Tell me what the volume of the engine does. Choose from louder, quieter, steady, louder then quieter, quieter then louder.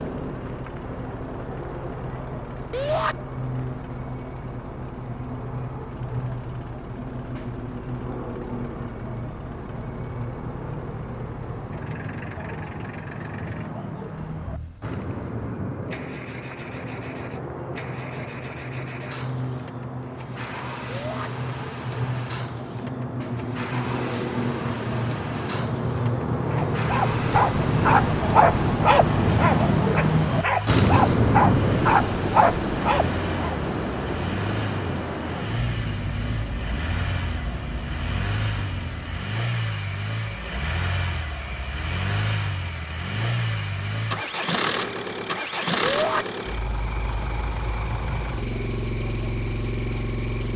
louder.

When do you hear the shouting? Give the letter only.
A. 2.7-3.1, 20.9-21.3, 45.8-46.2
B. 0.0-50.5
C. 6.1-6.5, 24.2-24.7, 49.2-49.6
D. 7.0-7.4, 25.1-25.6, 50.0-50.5
A.